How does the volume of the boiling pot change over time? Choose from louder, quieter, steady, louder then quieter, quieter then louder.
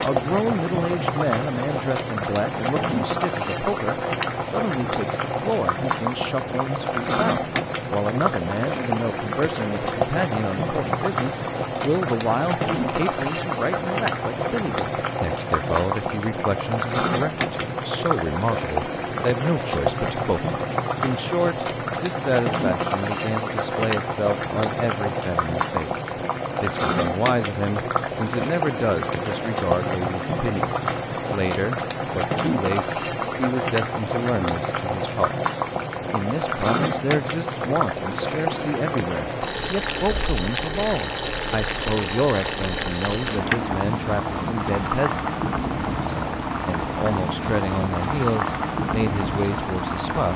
steady.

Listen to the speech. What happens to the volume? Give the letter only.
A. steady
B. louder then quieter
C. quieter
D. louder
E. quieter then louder
A.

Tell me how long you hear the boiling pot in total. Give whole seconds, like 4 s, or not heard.
50 s.